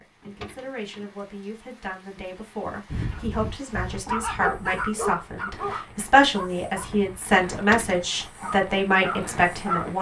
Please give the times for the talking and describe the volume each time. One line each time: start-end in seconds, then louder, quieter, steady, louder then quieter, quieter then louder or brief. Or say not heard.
0.0-9.9 louder.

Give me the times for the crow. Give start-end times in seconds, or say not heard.
not heard.